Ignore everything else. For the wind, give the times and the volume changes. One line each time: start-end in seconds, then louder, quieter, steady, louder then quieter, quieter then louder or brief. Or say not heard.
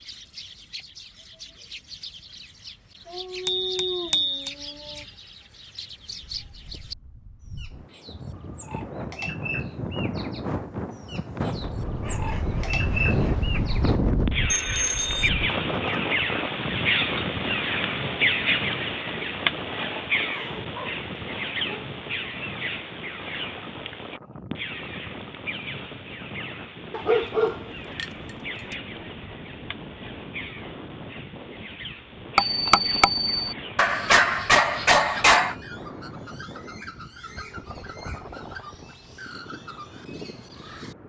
6.2-41.0 quieter.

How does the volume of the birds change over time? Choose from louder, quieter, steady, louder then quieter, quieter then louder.
louder then quieter.